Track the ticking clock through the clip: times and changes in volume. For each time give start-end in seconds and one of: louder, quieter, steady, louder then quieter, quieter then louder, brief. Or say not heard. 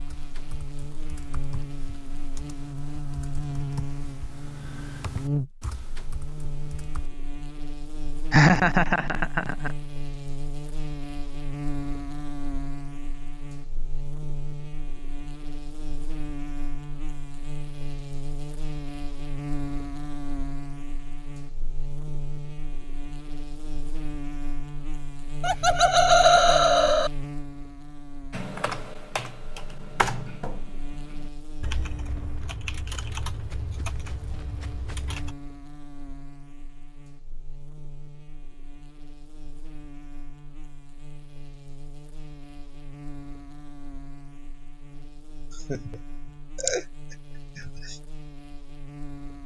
not heard.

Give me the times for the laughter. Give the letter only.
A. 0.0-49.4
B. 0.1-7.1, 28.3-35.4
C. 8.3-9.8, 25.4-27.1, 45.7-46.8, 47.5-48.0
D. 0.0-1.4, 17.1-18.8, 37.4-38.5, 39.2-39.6
C.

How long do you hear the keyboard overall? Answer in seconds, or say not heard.
14 s.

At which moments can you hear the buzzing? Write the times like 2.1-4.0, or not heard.
0.0-49.4.